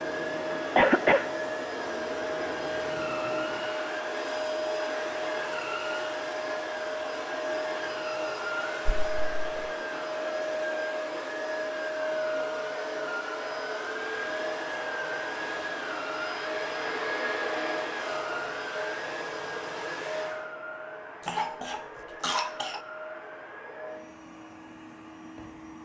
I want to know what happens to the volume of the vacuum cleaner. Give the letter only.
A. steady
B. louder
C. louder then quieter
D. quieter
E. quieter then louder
D.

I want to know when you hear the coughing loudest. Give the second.
1 s.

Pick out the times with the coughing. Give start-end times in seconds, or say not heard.
0.8-1.2, 8.8-9.7, 21.2-22.8.